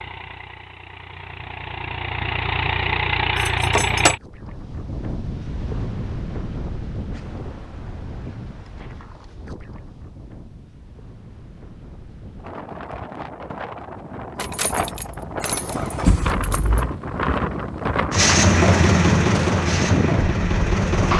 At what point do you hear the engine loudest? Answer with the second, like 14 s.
19 s.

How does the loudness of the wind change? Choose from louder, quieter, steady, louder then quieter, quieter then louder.
quieter then louder.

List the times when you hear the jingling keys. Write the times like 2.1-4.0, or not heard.
3.4-4.2, 14.3-16.9.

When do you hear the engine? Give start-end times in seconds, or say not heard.
0.0-4.2, 18.1-21.1.